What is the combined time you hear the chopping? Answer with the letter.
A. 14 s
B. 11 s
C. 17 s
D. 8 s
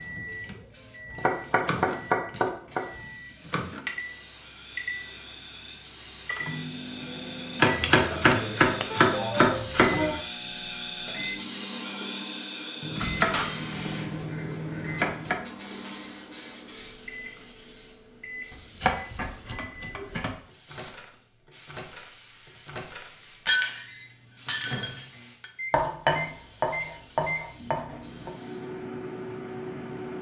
B.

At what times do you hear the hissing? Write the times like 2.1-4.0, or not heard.
0.0-28.8.